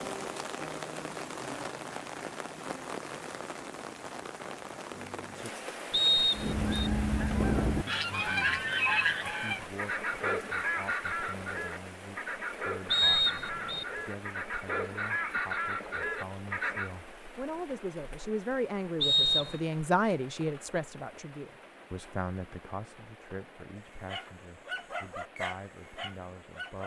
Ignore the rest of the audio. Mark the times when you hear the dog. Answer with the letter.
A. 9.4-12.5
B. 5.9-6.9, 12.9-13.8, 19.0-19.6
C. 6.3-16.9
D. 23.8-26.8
D.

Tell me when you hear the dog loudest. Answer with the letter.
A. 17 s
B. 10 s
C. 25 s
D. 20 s
C.